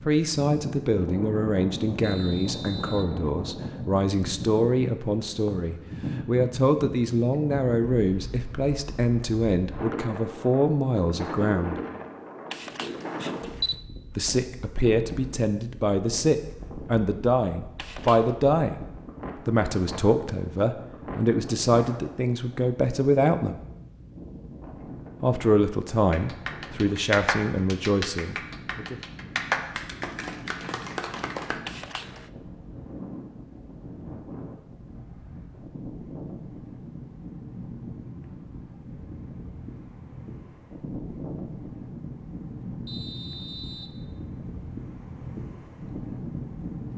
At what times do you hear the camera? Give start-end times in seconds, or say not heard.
12.5-13.8, 17.8-18.4, 31.6-32.3.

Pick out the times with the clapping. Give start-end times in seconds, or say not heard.
26.1-31.6.